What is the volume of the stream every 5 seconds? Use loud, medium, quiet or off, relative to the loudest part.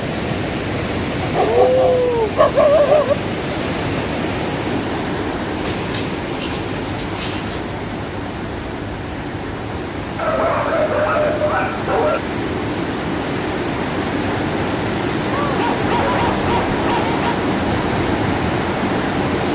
loud, medium, loud, loud.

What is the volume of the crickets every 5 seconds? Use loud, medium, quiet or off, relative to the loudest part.
medium, loud, medium, loud.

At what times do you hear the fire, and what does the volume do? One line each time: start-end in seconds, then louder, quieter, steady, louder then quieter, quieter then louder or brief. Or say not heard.
not heard.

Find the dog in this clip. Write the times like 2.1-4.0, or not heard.
1.2-3.1, 5.7-7.6, 10.2-12.2, 15.3-17.4.